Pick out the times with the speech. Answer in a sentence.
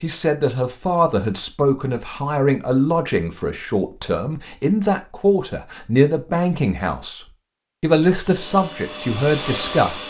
The speech can be heard from 0.0 to 7.2 s and from 7.8 to 10.0 s.